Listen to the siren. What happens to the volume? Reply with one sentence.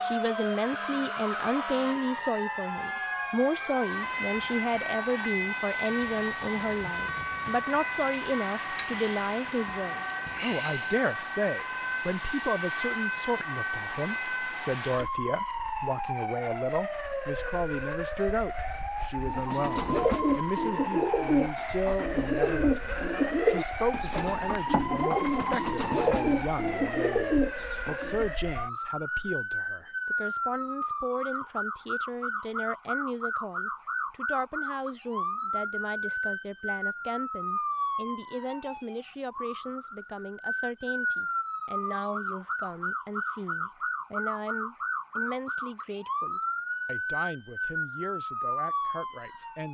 The loudness of the siren stays about the same.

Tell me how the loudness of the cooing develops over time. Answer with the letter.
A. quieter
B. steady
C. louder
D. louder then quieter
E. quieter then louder
B.